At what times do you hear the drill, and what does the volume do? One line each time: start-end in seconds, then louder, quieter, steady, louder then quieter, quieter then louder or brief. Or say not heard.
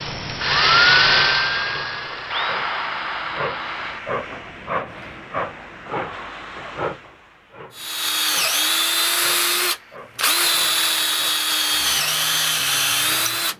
0.0-5.2 quieter
7.8-13.5 steady.